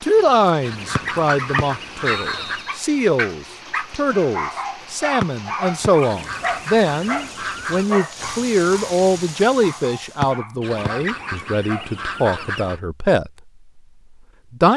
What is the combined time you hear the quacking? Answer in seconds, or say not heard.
6 s.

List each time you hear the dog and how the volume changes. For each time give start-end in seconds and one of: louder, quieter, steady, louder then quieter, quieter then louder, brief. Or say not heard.
0.5-11.9 quieter.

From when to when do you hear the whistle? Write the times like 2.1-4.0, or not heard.
0.9-2.8, 5.2-5.9, 10.2-10.9.